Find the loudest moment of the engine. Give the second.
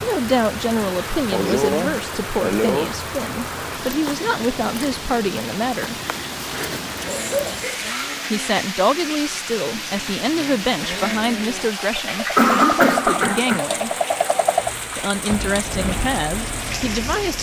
14 s.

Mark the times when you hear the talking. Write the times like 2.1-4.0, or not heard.
0.0-6.0, 8.3-13.9, 14.9-17.3.